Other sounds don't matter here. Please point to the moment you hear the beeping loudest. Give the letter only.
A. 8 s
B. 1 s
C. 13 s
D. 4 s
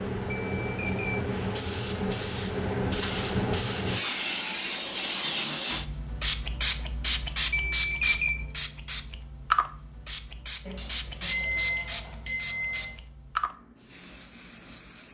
A.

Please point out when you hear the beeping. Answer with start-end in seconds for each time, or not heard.
0.3-1.3, 7.5-8.3, 10.7-12.9.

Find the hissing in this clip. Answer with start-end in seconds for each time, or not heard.
0.0-15.0.